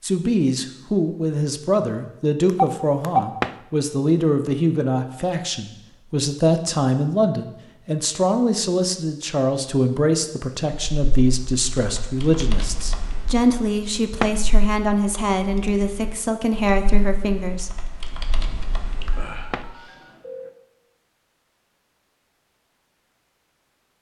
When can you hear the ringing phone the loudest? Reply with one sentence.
The volume of the ringing phone peaks at 3 seconds.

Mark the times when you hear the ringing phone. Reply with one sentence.
You can hear the ringing phone from 2.5 to 3.2 s and from 19.0 to 20.5 s.